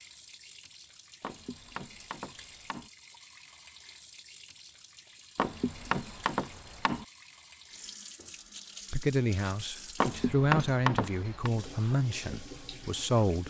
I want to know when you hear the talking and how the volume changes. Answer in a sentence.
You can hear the talking from 8.9 to 13.4 s, getting louder then quieter.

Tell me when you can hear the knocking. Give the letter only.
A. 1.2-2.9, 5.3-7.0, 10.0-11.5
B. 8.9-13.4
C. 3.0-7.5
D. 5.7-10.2
A.